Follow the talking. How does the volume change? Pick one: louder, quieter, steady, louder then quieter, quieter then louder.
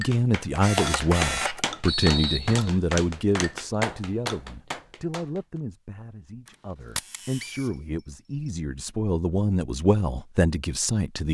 quieter then louder.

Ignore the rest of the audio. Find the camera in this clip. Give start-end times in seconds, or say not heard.
0.6-1.6, 6.5-7.5.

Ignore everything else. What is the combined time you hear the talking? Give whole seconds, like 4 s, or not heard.
11 s.